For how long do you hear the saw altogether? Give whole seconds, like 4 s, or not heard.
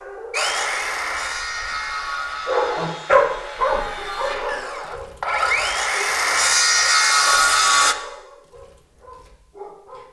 8 s.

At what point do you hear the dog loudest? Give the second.
3 s.